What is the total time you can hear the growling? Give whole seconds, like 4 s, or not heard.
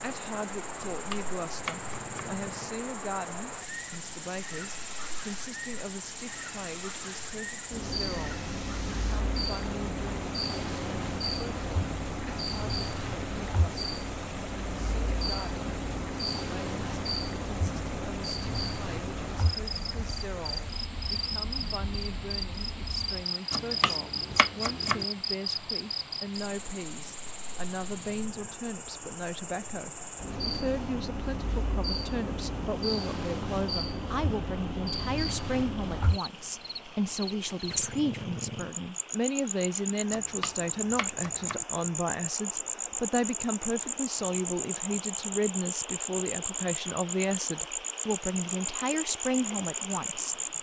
3 s.